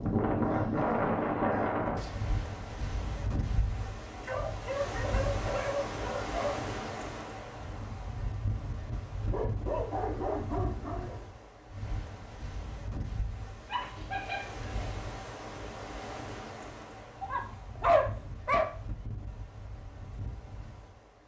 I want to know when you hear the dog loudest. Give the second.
18 s.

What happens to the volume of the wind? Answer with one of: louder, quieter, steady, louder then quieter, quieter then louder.
quieter.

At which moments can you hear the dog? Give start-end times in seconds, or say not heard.
0.4-1.8, 4.2-6.5, 9.2-11.2, 13.7-15.1, 17.2-18.7.